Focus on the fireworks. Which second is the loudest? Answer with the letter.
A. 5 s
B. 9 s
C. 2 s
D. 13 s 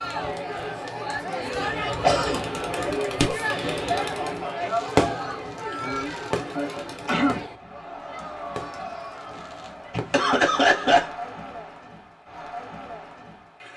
A.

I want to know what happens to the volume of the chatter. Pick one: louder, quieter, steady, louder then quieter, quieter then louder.
quieter.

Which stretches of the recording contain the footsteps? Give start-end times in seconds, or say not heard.
not heard.